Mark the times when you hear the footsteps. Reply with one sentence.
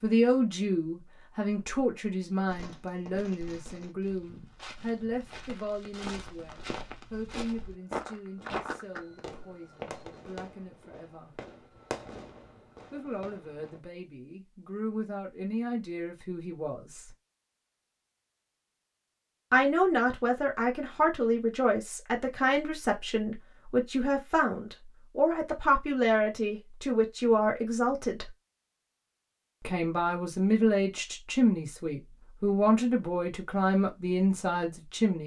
You can hear the footsteps from 4.0 to 10.1 s.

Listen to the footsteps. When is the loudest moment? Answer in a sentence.
The loudest moment of the footsteps is at 9 seconds.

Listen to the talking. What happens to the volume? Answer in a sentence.
The volume of the talking goes down, then up.